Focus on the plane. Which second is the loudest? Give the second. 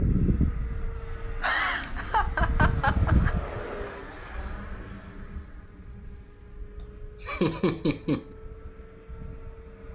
3 s.